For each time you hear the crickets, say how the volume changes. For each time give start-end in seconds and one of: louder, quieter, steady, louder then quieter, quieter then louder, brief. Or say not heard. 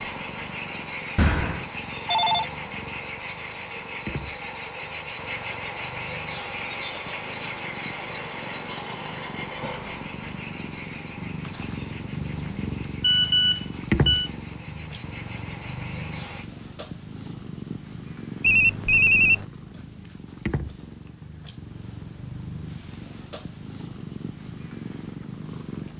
0.0-16.4 quieter.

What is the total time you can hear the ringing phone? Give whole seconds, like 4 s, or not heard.
4 s.